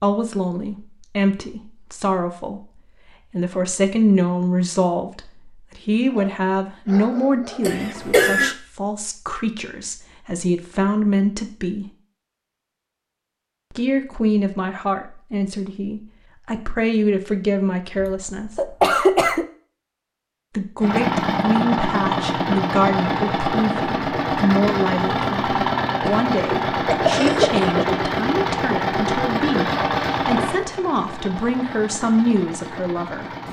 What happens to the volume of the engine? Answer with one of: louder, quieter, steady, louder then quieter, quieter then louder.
quieter.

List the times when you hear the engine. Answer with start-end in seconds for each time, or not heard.
20.8-33.4.